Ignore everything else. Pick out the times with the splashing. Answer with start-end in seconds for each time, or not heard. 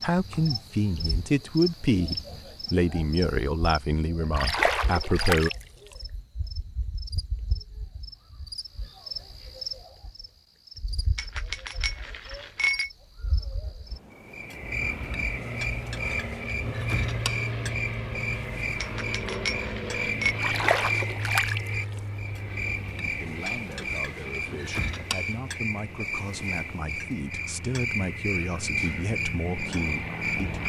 4.3-5.5, 20.4-21.6.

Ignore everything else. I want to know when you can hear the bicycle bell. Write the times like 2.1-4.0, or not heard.
11.2-12.9, 18.8-20.4.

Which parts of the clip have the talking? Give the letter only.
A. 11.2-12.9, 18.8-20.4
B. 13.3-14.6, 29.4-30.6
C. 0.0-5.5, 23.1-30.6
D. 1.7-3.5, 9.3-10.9
C.